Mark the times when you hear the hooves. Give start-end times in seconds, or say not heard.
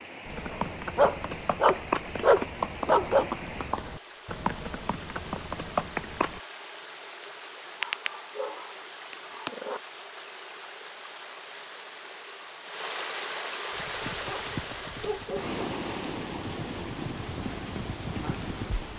0.2-6.4, 13.7-18.9.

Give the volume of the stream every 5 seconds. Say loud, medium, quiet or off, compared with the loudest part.
medium, medium, loud, loud.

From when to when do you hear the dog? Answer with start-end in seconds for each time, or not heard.
0.5-3.3, 7.8-9.8, 14.2-15.6.